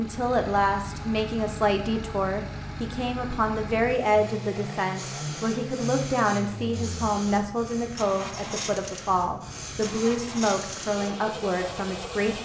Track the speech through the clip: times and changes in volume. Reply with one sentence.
The speech can be heard from 0.0 to 12.4 s, at a steady volume.